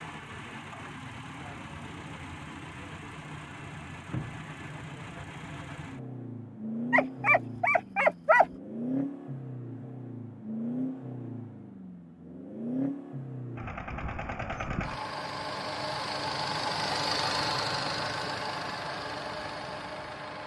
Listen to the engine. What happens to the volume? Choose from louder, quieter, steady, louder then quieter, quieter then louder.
louder.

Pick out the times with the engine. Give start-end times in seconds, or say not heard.
0.0-20.4.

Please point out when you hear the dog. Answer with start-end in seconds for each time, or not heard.
6.9-8.4.